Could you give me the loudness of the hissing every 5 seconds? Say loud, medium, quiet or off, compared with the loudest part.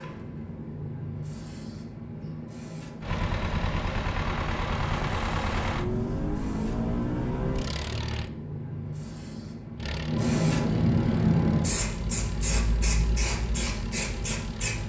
medium, medium, loud.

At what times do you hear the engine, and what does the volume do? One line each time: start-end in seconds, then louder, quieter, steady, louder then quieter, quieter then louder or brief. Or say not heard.
3.0-8.3 steady
9.8-14.8 steady.